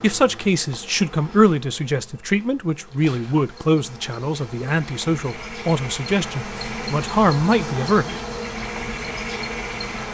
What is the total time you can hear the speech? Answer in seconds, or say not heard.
8 s.